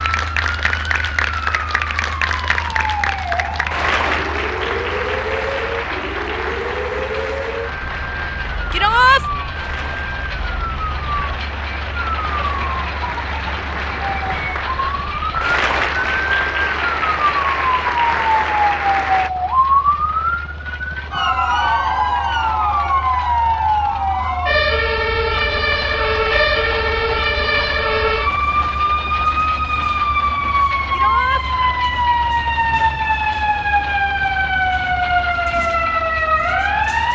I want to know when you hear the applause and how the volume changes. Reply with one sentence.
The applause can be heard from 0.0 to 19.3 s, getting quieter then louder.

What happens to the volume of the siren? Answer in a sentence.
The loudness of the siren goes up.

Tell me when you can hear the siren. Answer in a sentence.
You can hear the siren from 0.1 to 37.0 s.